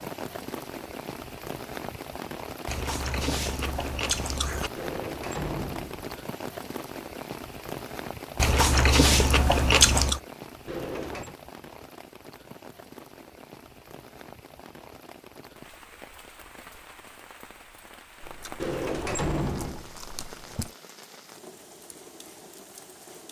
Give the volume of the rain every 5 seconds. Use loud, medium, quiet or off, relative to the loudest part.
loud, loud, medium, medium, medium.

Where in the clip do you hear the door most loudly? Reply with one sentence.
The volume of the door peaks at 19 seconds.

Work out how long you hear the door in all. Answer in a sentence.
You can hear the door for 3 seconds altogether.